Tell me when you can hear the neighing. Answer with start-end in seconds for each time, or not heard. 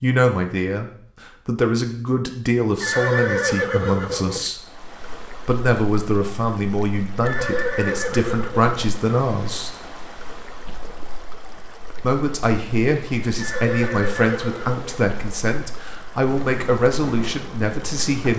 2.8-4.5, 7.2-8.8, 13.3-15.1.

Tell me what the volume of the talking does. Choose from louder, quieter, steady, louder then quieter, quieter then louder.
steady.